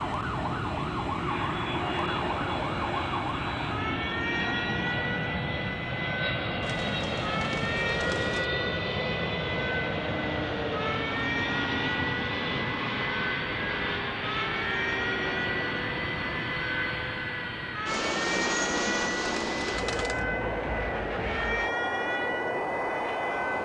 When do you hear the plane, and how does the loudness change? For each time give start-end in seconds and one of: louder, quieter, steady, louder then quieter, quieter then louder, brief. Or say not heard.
0.0-23.6 steady.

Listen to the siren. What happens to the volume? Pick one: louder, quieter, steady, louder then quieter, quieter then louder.
steady.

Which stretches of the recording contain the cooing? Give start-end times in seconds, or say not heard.
6.6-8.5, 17.9-20.2.